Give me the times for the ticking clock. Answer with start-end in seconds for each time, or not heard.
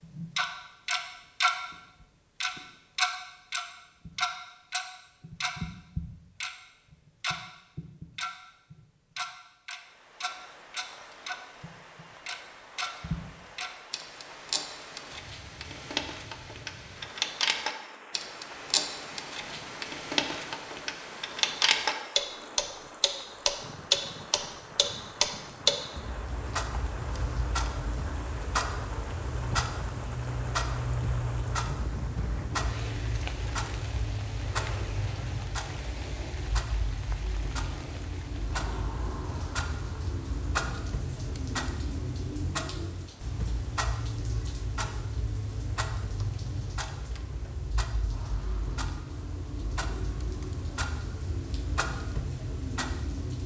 0.0-53.4.